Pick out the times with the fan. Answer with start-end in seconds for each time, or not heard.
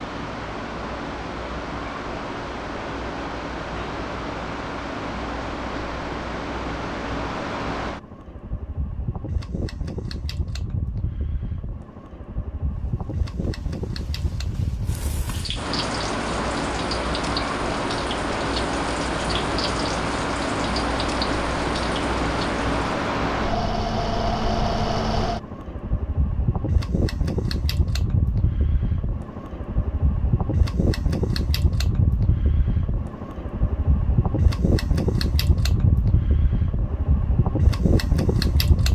0.0-38.9.